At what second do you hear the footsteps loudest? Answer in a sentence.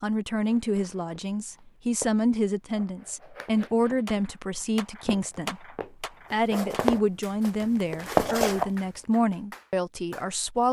The loudest moment of the footsteps is at 8 seconds.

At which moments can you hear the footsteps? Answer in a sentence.
The footsteps can be heard from 0.5 to 8.7 s.